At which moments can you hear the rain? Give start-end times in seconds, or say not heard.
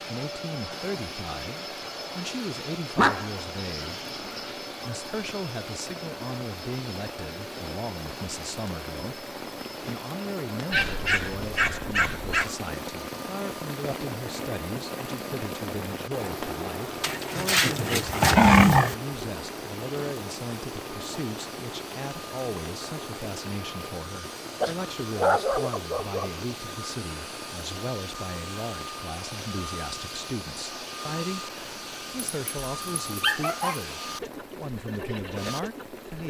0.0-36.2.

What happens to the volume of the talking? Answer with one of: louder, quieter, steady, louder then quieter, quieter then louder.
steady.